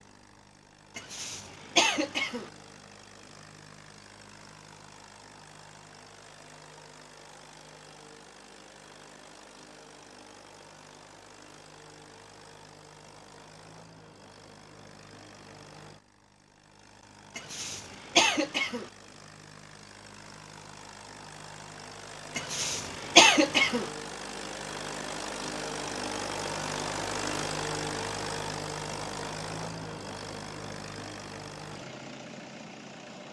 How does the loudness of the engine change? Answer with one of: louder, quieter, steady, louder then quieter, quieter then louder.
louder.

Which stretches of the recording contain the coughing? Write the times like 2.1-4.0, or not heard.
0.9-2.5, 17.4-18.9, 22.4-23.9.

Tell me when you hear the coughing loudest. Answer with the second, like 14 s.
23 s.